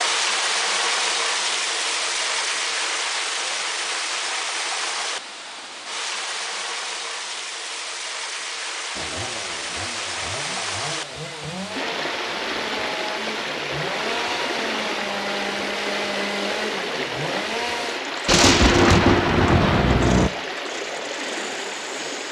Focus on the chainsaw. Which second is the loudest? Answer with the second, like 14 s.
16 s.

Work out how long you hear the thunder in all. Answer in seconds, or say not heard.
2 s.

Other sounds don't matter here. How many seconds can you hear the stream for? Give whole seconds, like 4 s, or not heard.
22 s.